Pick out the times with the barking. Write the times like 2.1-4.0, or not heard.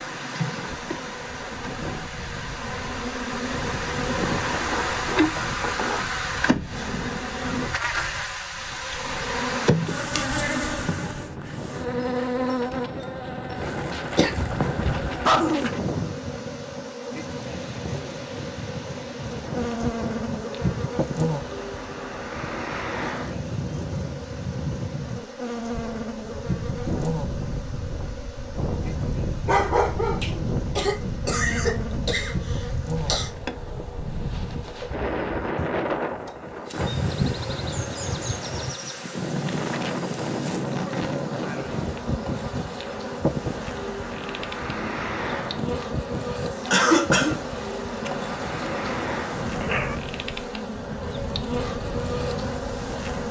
13.7-15.9, 29.4-30.4, 48.0-50.0.